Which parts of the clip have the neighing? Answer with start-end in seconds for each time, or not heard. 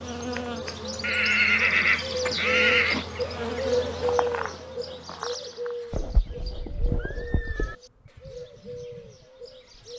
1.0-3.0, 5.9-7.8.